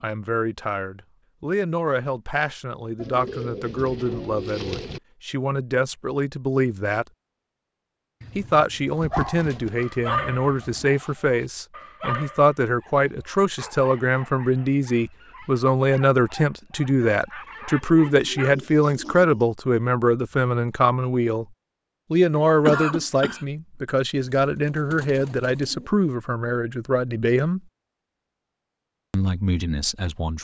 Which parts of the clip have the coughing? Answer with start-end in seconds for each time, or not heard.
22.3-23.4.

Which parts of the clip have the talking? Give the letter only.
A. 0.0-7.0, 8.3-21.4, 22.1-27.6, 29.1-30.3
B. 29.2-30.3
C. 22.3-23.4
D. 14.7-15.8
A.